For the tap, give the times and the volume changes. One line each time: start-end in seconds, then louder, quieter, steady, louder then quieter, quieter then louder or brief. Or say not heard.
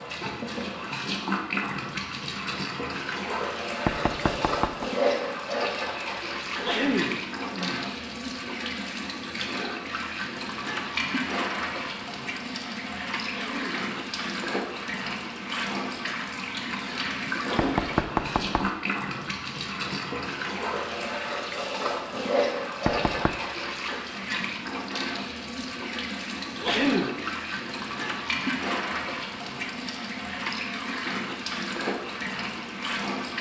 0.0-33.3 steady.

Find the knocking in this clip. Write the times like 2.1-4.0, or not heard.
3.9-4.8, 17.6-18.7, 22.9-23.4.